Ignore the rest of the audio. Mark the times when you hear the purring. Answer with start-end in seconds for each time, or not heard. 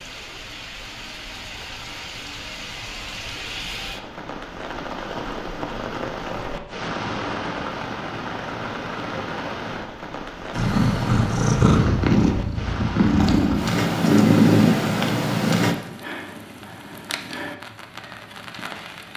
10.5-15.8.